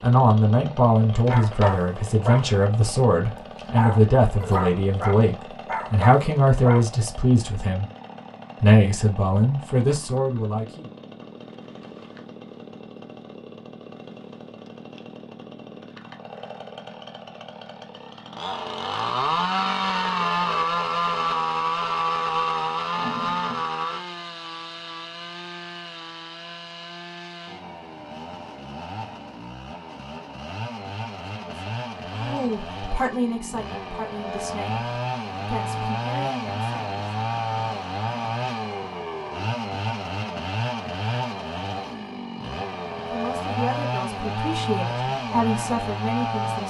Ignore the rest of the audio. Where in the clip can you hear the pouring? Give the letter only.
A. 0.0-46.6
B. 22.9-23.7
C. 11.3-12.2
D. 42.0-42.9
B.